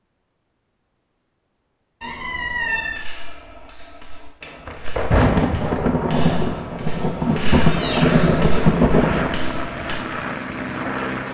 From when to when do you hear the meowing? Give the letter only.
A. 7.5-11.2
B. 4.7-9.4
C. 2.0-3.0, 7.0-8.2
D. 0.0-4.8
C.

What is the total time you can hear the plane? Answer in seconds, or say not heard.
4 s.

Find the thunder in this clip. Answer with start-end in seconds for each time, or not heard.
4.7-9.4.